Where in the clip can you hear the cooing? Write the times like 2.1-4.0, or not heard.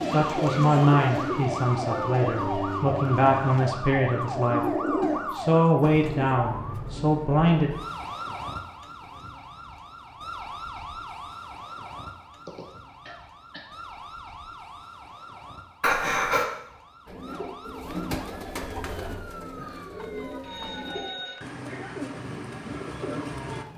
0.0-6.4, 17.1-23.6.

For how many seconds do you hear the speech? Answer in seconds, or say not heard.
7 s.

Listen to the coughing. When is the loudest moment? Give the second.
16 s.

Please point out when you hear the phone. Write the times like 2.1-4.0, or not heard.
19.9-21.5.